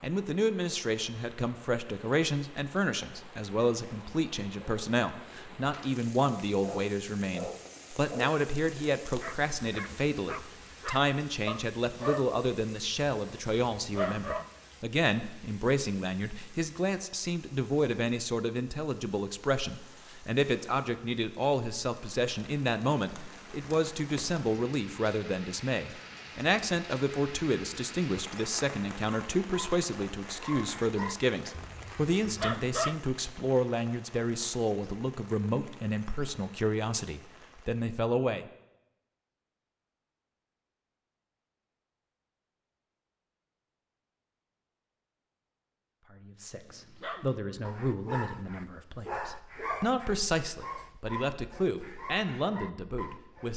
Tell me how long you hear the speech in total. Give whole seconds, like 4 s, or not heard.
46 s.